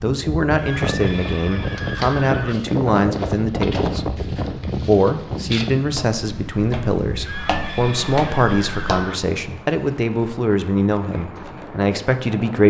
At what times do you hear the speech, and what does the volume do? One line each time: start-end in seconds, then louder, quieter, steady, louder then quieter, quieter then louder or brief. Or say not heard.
0.0-12.6 steady.